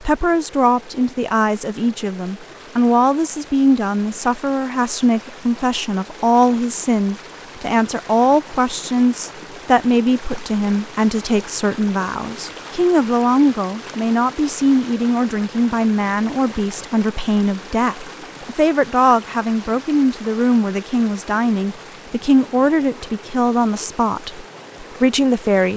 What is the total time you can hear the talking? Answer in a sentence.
You can hear the talking for 26 seconds altogether.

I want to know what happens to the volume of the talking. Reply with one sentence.
The loudness of the talking stays about the same.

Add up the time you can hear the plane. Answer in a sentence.
You can't hear the plane here.